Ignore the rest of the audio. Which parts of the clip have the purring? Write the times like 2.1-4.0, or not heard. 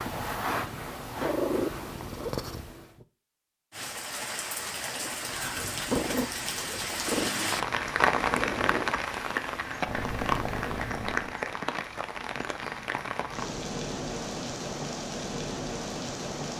0.0-3.0, 5.0-11.4.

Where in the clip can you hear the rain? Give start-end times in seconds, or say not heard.
3.7-16.5.